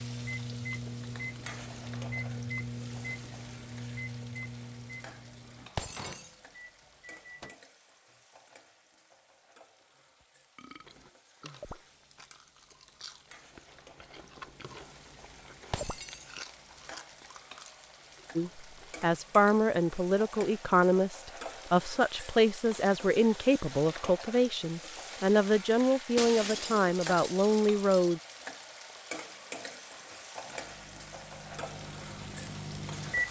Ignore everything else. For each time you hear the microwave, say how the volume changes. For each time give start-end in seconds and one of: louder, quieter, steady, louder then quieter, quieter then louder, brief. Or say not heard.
0.0-8.2 quieter
30.5-33.2 brief.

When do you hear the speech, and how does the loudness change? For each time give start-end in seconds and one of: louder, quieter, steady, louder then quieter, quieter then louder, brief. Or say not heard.
18.4-28.2 steady.